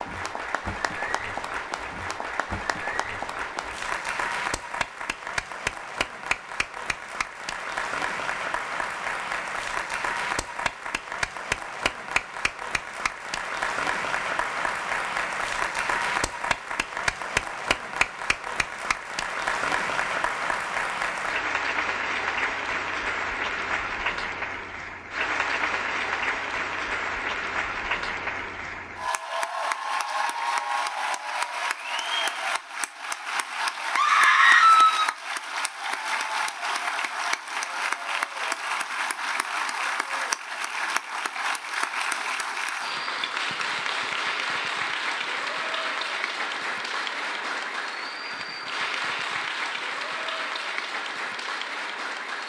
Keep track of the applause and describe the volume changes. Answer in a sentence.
The loudness of the applause stays about the same.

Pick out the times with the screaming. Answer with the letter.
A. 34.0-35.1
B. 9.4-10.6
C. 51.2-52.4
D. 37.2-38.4
A.